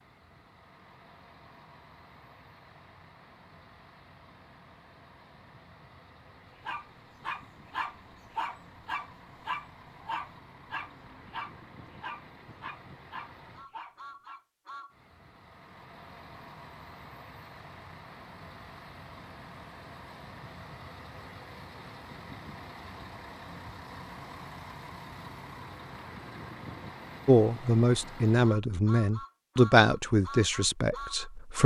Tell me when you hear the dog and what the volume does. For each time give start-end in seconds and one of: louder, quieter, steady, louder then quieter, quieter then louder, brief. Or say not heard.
6.6-14.4 quieter.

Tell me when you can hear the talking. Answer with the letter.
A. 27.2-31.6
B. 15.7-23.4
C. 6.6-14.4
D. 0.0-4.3
A.